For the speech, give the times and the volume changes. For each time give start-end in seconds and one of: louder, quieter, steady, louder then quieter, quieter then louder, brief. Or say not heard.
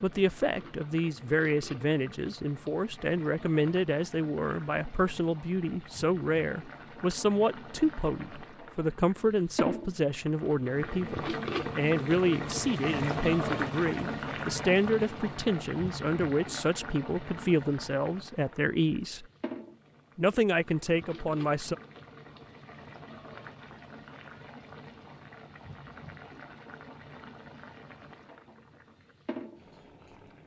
0.0-19.2 steady
20.1-21.8 brief.